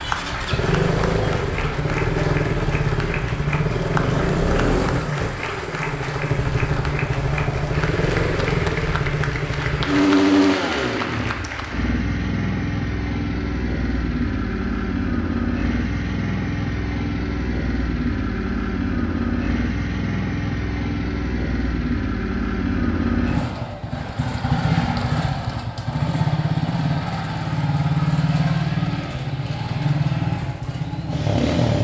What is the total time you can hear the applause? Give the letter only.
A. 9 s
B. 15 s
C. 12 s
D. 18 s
C.